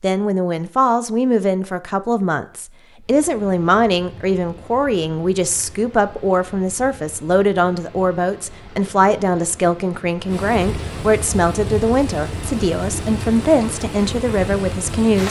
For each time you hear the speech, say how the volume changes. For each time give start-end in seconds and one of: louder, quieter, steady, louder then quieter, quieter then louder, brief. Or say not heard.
0.0-15.2 steady.